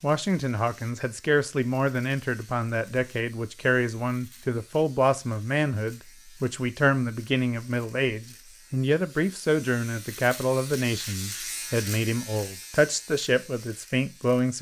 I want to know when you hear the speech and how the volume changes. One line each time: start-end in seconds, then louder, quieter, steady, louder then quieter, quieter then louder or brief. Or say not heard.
0.0-14.5 steady.